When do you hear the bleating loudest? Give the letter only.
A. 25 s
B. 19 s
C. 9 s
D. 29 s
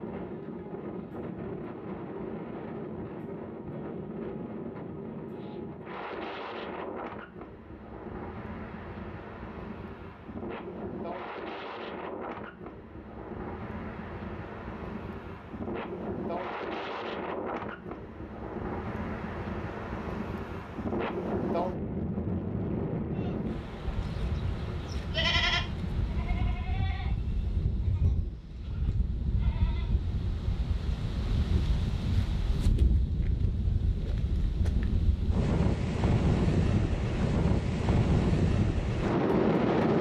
A.